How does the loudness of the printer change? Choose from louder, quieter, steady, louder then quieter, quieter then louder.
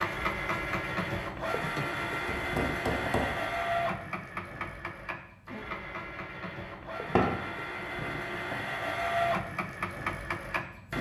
quieter then louder.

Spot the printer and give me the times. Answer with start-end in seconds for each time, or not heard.
0.0-10.9.